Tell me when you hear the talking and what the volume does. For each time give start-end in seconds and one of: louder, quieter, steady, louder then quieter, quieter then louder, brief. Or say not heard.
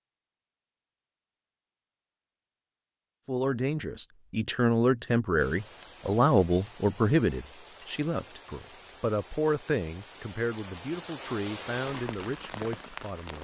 3.2-13.3 quieter.